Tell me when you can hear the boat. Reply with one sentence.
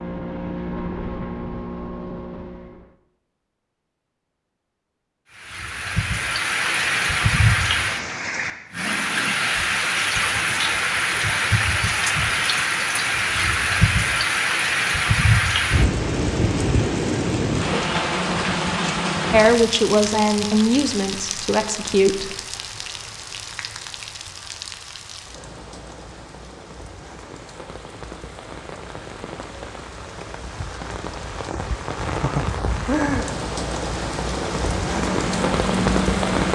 You can hear the boat from 0.0 to 3.0 s and from 34.8 to 36.5 s.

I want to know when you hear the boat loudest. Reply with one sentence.
The loudest moment of the boat is at 36 seconds.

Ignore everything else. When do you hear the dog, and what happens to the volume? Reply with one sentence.
The dog can't be heard in this clip.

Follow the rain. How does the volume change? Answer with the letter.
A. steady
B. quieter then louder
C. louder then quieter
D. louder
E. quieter
B.